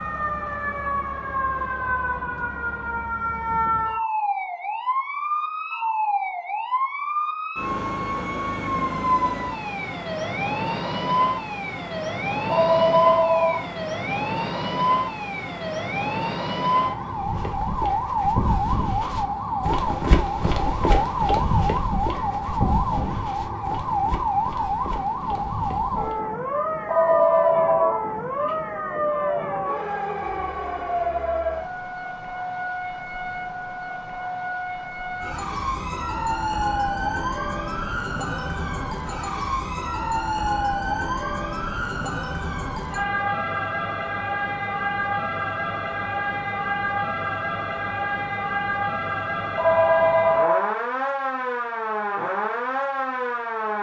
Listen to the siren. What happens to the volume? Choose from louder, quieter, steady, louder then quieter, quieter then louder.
steady.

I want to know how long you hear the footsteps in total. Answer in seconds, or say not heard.
9 s.